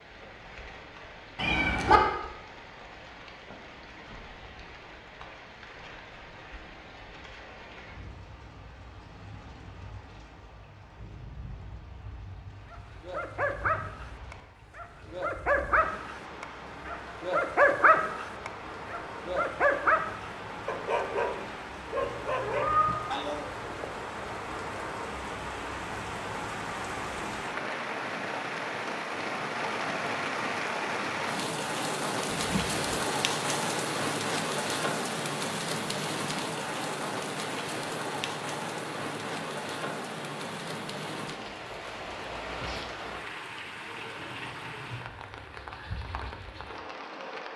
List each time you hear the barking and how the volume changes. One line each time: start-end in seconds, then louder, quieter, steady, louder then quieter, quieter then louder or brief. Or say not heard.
12.7-23.6 louder then quieter.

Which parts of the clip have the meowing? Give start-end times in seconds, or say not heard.
1.4-2.0, 22.0-22.9, 32.4-33.0.